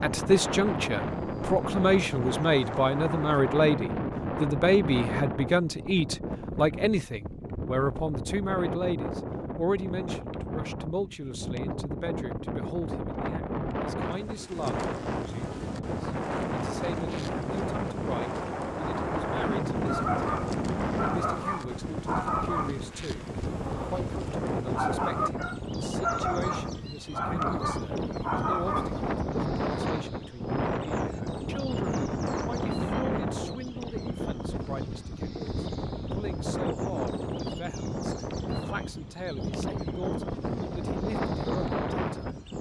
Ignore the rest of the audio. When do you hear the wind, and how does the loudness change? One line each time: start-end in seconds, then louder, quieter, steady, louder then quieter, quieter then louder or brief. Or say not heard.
0.0-42.5 steady.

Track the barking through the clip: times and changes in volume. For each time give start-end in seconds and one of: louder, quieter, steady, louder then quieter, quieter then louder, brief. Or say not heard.
19.9-29.1 steady.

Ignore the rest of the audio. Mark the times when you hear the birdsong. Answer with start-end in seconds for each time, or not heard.
not heard.